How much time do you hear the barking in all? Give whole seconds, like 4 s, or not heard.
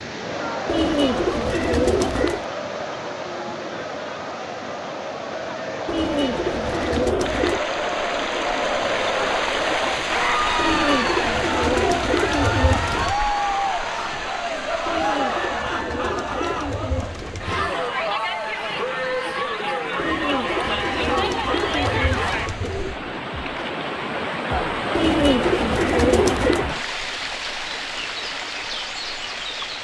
not heard.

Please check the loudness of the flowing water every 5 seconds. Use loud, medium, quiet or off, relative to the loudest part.
medium, loud, loud, quiet, loud, loud.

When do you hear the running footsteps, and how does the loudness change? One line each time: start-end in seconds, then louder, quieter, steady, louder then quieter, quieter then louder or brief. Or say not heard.
not heard.